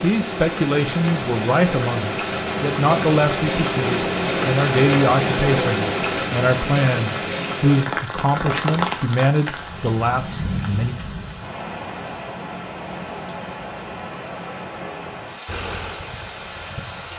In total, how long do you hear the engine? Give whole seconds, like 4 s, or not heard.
8 s.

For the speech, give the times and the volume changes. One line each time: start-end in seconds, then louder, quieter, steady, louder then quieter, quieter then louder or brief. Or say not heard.
0.0-10.9 steady.